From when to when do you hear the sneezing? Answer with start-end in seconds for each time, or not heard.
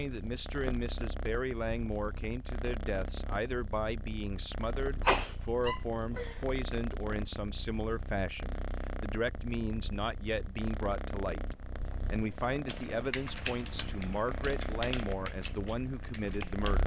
5.0-6.4.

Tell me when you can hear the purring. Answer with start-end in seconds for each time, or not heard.
0.0-16.8.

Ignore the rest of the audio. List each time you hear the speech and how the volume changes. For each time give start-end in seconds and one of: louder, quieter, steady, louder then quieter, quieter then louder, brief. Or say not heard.
0.0-16.8 steady.